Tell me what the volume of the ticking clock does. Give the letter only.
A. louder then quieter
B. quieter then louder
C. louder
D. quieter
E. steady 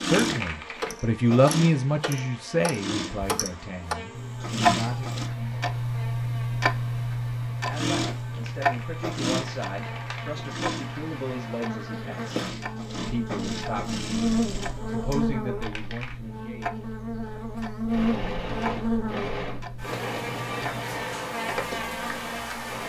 D.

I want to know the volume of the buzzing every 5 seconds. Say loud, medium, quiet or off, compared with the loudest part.
quiet, quiet, loud, loud, loud.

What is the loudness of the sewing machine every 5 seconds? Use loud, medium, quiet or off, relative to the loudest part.
loud, loud, medium, loud, medium.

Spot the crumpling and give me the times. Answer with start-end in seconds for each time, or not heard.
0.2-0.9, 8.3-10.3, 15.6-16.1.